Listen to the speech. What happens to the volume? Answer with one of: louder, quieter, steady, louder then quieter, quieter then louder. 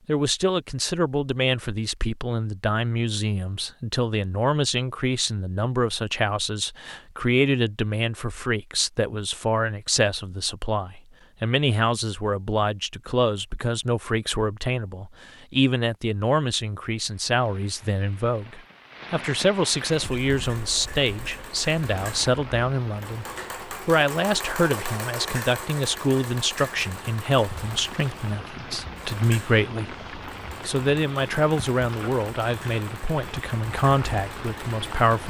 steady.